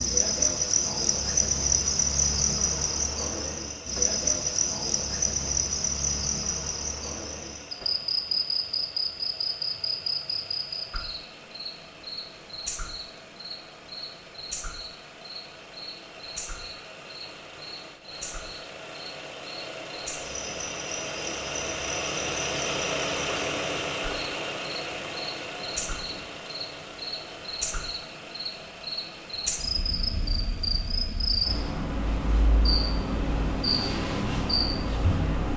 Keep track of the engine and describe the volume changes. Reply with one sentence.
The loudness of the engine goes up, then down.